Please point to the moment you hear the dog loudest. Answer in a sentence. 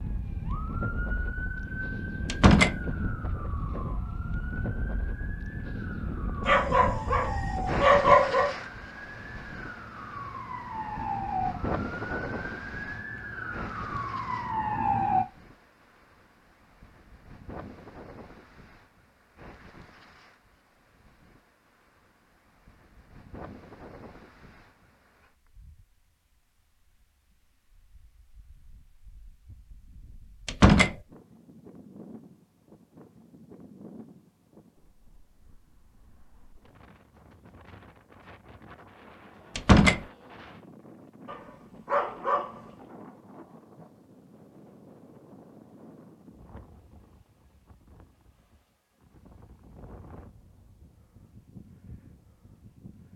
The volume of the dog peaks at 8 seconds.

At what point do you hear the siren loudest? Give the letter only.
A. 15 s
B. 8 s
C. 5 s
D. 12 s
A.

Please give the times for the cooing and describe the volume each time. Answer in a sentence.
The cooing can't be heard in this clip.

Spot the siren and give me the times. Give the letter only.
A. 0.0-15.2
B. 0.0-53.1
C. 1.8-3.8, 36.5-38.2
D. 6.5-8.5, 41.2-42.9
A.